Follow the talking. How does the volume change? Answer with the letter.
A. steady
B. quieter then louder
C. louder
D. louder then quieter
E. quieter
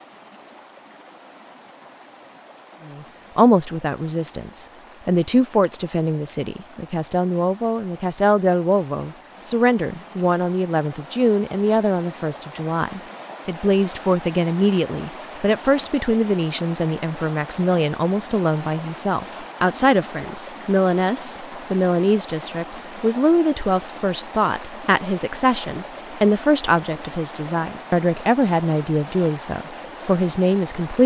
A.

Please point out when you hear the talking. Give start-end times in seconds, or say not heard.
2.9-31.0.